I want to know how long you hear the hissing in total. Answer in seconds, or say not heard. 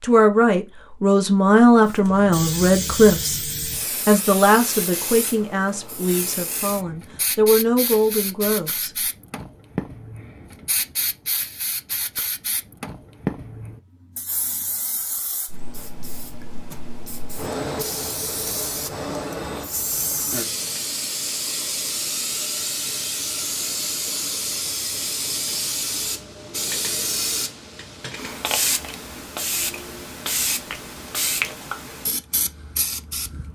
32 s.